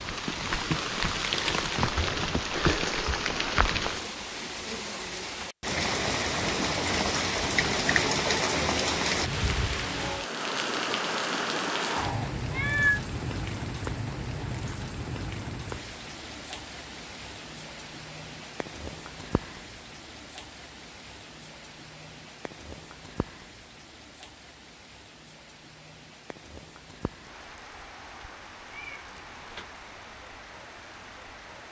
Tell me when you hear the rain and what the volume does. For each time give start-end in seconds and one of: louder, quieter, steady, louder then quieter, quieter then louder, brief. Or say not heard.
0.0-31.6 quieter.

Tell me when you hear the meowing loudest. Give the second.
13 s.